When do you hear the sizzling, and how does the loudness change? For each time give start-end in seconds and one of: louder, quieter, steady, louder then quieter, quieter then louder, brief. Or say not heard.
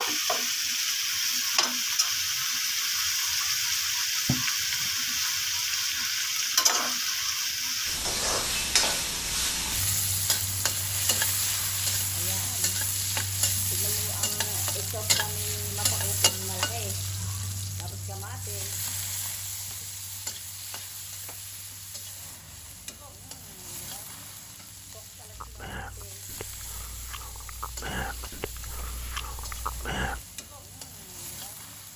0.0-31.9 quieter.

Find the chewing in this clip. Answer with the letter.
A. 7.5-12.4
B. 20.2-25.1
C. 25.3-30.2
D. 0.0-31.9
C.